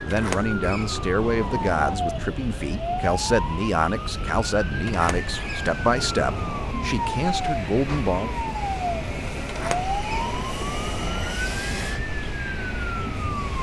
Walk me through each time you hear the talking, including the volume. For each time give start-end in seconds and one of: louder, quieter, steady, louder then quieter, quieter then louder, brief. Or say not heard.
0.0-8.3 steady.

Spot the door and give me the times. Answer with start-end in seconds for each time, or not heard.
0.1-1.9, 4.8-6.8, 9.4-11.3.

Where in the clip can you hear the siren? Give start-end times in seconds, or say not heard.
0.0-13.5.